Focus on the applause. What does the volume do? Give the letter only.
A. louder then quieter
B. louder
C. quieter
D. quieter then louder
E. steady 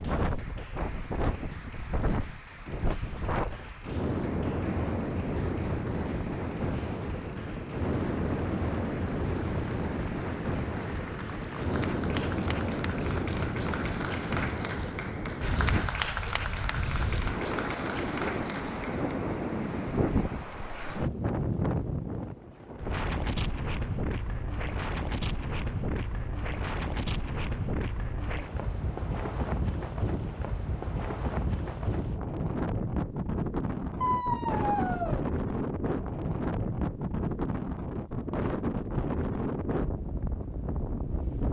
B.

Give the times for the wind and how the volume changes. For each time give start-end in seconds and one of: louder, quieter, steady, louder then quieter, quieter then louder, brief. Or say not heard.
0.0-41.4 steady.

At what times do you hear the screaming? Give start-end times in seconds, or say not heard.
34.0-35.2.